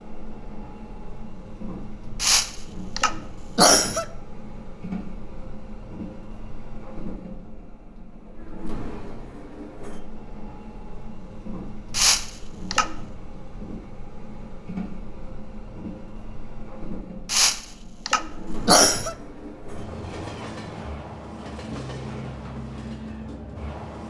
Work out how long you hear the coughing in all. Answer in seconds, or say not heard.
5 s.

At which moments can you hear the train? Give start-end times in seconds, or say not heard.
0.0-24.0.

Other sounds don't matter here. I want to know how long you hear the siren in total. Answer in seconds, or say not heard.
not heard.